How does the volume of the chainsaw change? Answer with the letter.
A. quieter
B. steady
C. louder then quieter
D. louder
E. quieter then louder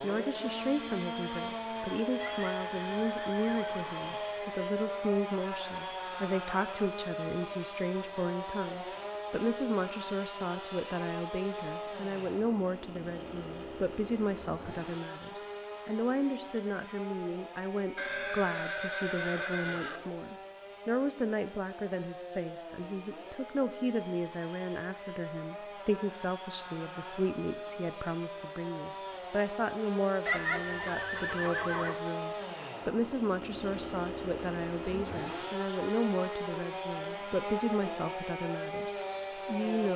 E.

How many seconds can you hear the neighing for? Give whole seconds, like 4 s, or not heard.
6 s.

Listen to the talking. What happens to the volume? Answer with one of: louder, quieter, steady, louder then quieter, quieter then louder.
steady.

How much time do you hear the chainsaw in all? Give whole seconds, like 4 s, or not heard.
40 s.